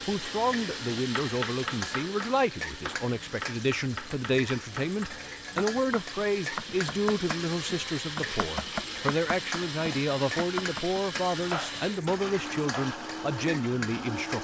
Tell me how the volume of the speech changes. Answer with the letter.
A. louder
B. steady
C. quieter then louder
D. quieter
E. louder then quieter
B.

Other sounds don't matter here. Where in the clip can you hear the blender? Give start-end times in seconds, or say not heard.
0.0-14.3.